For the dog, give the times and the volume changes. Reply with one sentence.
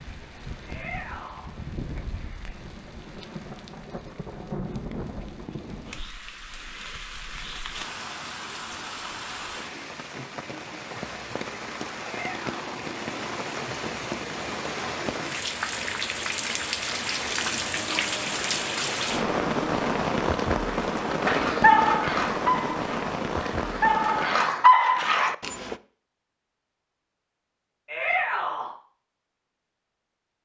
The dog can be heard from 21.2 to 25.8 s, getting quieter then louder.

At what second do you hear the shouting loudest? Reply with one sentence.
The loudest moment of the shouting is at 28 seconds.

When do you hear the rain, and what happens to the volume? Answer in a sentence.
You can hear the rain from 0.0 to 24.5 s, getting louder.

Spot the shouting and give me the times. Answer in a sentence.
You can hear the shouting from 0.7 to 1.5 s, from 12.0 to 12.8 s and from 27.9 to 28.7 s.